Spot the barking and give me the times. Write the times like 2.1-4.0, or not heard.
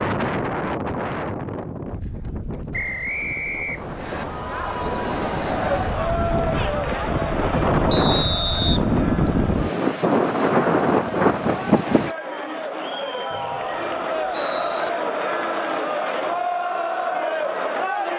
not heard.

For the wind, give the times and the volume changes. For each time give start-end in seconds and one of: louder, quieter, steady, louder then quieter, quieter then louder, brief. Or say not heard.
0.0-12.2 quieter then louder.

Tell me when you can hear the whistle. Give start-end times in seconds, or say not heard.
2.7-4.2, 7.9-8.8, 13.3-14.9.